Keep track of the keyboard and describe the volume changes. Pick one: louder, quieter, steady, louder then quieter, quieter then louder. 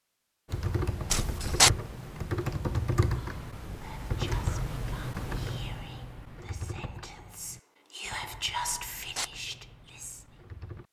quieter.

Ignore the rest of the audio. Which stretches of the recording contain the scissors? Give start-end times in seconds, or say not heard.
1.1-1.7, 8.7-9.3.